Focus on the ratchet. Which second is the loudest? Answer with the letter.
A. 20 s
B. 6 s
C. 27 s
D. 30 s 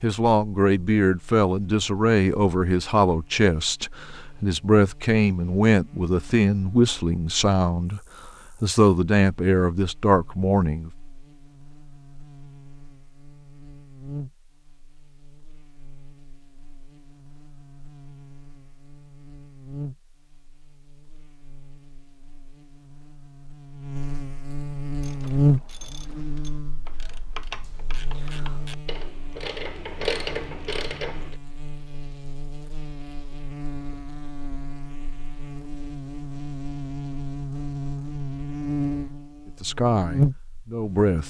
D.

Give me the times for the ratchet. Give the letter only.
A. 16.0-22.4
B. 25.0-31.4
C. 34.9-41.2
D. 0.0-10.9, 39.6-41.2
B.